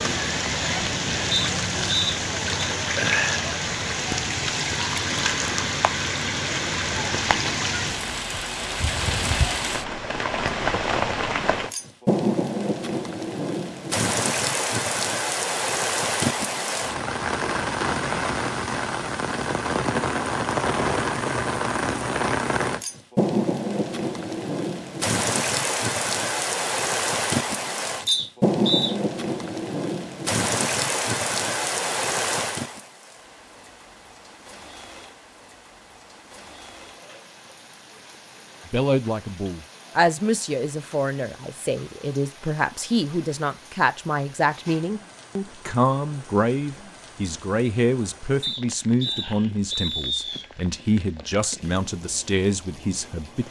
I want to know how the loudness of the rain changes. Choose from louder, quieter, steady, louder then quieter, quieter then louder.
quieter.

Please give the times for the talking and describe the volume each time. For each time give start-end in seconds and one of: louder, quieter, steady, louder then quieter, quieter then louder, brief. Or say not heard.
38.6-53.4 steady.